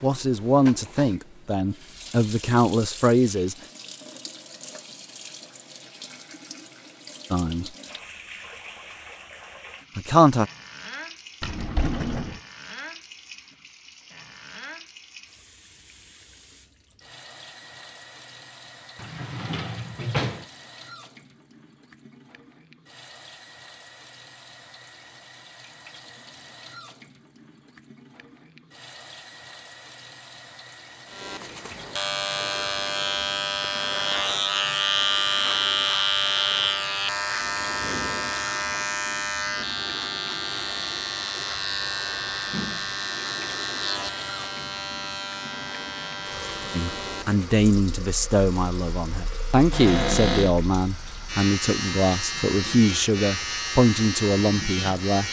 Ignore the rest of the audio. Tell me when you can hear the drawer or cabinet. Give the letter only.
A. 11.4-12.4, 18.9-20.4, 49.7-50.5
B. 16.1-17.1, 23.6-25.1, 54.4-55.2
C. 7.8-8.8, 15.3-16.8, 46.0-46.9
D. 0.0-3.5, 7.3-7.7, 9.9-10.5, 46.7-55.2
A.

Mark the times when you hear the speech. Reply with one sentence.
The speech can be heard from 0.0 to 3.5 s, from 7.3 to 7.7 s, from 9.9 to 10.5 s and from 46.7 to 55.2 s.